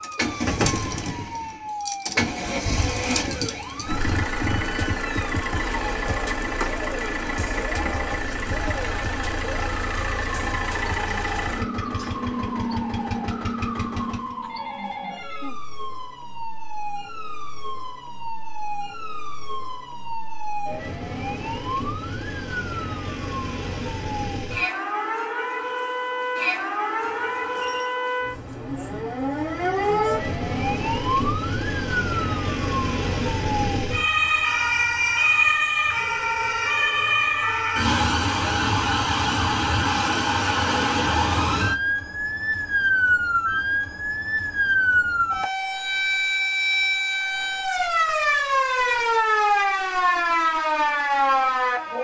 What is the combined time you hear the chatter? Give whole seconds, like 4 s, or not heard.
not heard.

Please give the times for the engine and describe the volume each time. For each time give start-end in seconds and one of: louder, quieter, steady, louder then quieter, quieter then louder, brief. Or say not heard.
0.0-14.3 steady.